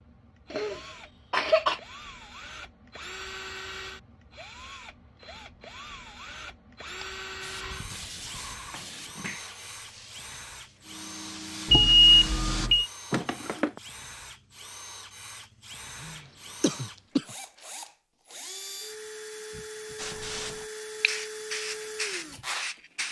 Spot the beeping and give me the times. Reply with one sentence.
You can hear the beeping from 11.7 to 12.8 s.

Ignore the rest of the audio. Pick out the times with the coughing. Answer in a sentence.
You can hear the coughing from 0.5 to 1.8 s, from 13.1 to 13.8 s and from 16.0 to 17.4 s.